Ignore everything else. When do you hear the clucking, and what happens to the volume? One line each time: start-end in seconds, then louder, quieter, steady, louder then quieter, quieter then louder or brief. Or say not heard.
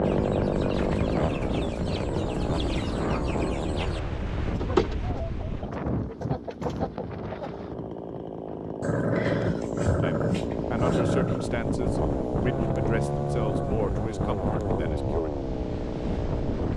0.0-7.8 louder then quieter.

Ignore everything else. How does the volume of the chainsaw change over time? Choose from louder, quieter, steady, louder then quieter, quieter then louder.
quieter then louder.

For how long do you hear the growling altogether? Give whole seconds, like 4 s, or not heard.
3 s.